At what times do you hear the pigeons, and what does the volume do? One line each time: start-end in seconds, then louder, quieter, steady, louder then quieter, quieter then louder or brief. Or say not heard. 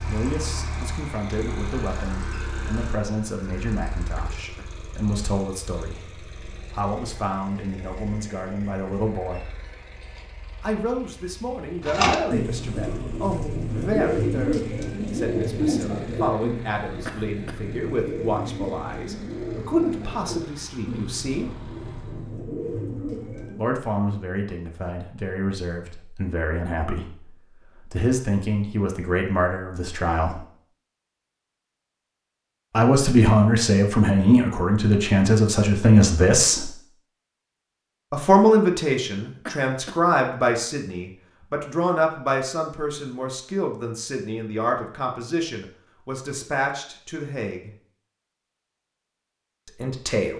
11.8-23.6 quieter.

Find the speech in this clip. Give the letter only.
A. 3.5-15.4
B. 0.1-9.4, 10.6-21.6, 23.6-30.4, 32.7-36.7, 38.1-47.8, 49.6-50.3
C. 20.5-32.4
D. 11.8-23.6
B.